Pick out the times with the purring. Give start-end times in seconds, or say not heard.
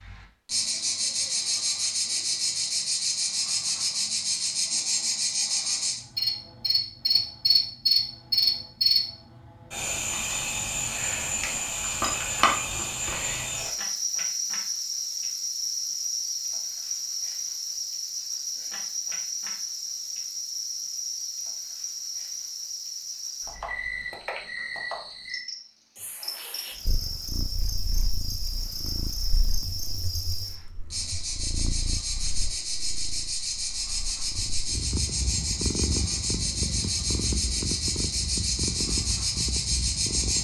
26.9-40.3.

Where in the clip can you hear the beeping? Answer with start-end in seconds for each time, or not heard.
not heard.